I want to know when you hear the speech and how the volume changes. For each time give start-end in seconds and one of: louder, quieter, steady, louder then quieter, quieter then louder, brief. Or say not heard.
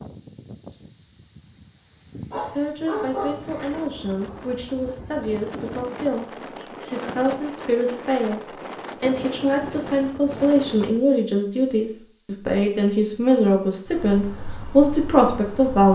2.4-15.8 louder.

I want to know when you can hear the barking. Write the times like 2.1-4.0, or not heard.
2.3-3.9.